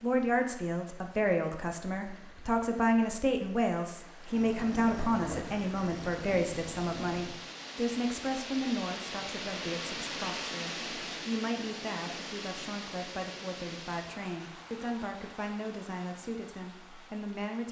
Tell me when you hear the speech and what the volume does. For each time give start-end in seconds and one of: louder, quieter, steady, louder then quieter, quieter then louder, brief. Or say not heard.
0.0-17.6 quieter.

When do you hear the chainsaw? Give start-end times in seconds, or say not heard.
not heard.